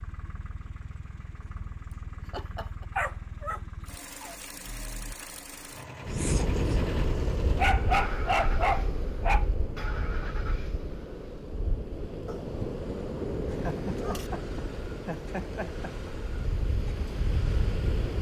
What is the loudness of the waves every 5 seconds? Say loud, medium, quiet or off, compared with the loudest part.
off, loud, loud, loud.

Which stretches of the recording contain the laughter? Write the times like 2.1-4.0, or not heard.
1.9-2.9, 6.0-6.8, 13.4-16.1.